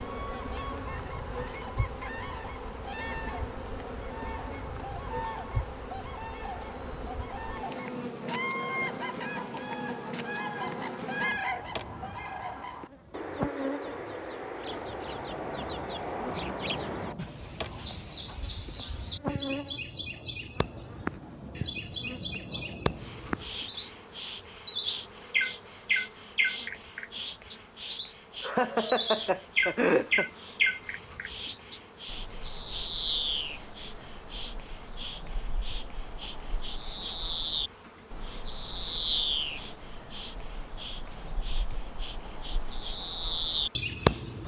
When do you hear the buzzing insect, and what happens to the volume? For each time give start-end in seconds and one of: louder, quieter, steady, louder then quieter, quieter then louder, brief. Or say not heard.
0.0-44.4 quieter.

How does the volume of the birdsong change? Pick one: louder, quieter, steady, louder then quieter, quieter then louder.
louder.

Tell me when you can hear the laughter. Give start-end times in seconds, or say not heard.
28.4-30.2.